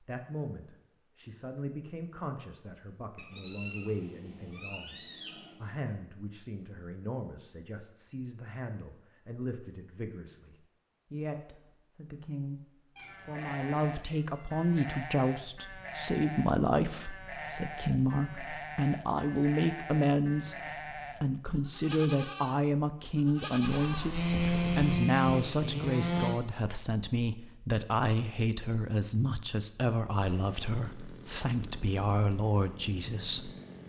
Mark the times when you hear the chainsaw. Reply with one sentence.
The chainsaw can be heard from 24.1 to 26.4 s and from 30.2 to 33.8 s.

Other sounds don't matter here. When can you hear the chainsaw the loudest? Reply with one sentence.
The loudest moment of the chainsaw is at 25 seconds.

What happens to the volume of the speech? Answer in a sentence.
The loudness of the speech goes up.